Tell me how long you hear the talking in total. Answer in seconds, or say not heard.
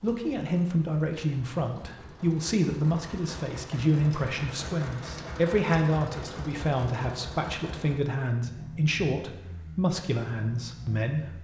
11 s.